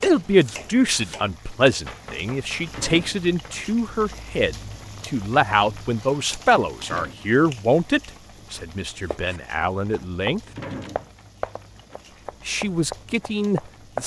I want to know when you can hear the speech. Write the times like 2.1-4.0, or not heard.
0.0-10.4, 12.4-14.0.